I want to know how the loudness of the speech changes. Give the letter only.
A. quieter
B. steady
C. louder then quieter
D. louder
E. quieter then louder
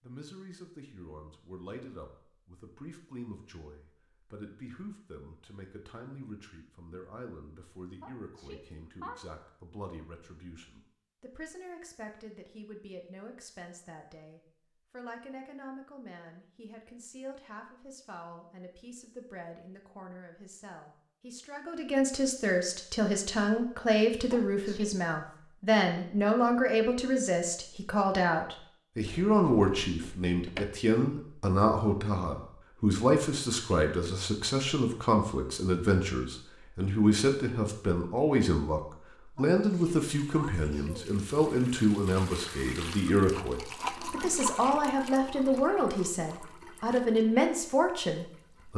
D.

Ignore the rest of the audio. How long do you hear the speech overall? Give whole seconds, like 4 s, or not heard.
49 s.